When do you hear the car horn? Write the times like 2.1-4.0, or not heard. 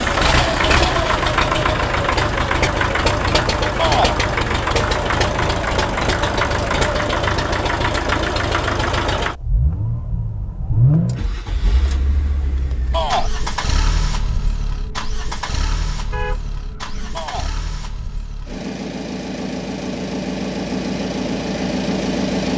16.1-17.3.